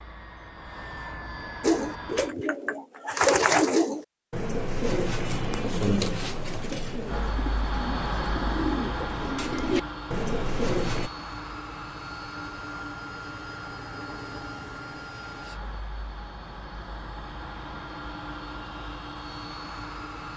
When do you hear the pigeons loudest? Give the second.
3 s.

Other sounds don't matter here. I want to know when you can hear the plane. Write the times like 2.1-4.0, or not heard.
0.0-2.4, 7.0-20.3.